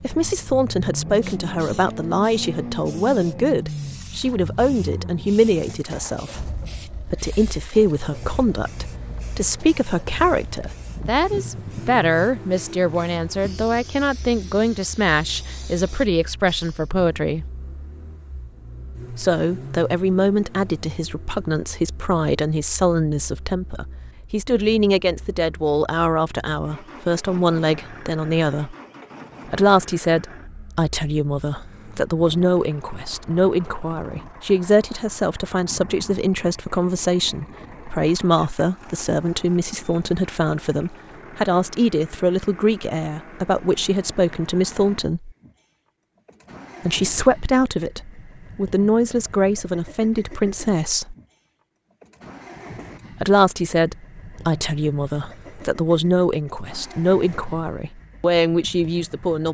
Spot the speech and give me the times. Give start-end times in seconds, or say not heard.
0.0-17.4, 19.1-28.8, 29.4-45.3, 46.9-51.1, 53.2-59.5.